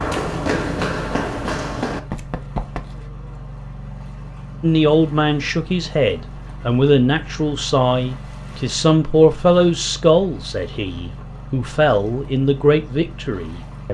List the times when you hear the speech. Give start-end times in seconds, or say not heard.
4.6-13.9.